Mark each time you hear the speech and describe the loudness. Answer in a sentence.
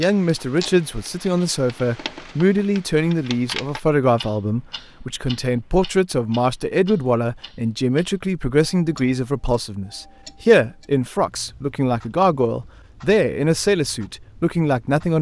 You can hear the speech from 0.0 to 15.1 s, at a steady volume.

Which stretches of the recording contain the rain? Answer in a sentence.
You can't hear the rain here.